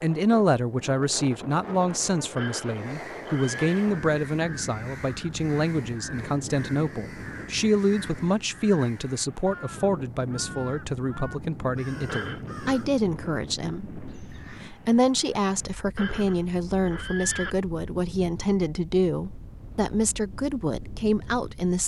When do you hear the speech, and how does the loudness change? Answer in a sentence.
You can hear the speech from 0.0 to 21.8 s, at a steady volume.